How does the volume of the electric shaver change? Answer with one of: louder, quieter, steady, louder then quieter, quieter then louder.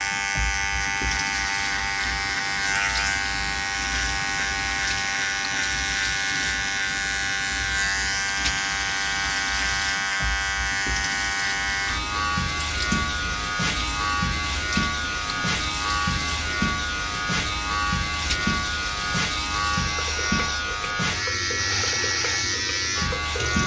steady.